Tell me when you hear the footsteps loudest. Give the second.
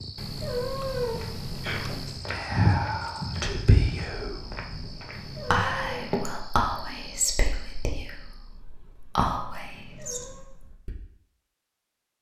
3 s.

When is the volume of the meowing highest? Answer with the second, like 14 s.
1 s.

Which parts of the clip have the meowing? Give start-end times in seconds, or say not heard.
0.1-2.2, 5.1-6.0, 9.7-10.4.